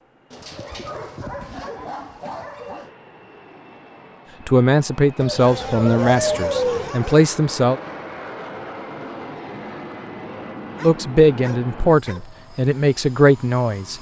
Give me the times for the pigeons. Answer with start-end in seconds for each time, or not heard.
5.2-6.9.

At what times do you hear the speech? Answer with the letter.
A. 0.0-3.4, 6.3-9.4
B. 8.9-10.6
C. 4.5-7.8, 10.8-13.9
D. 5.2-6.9
C.